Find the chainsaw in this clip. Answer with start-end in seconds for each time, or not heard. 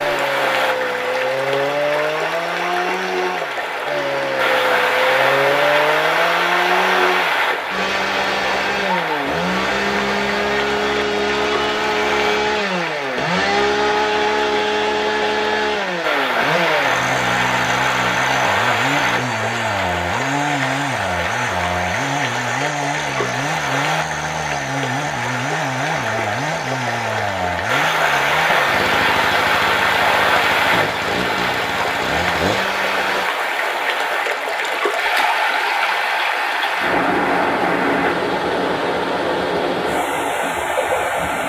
0.0-33.2.